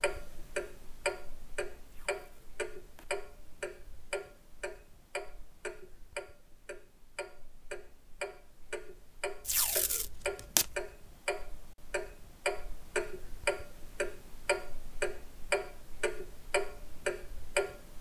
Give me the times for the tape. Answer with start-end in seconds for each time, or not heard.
1.9-3.1, 9.4-10.8.